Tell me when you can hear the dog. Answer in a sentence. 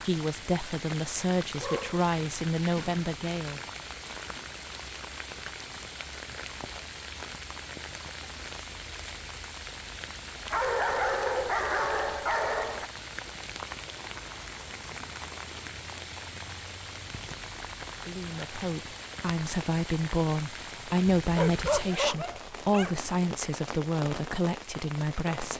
The dog can be heard from 1.6 to 3.0 s, from 10.5 to 12.9 s and from 21.2 to 23.1 s.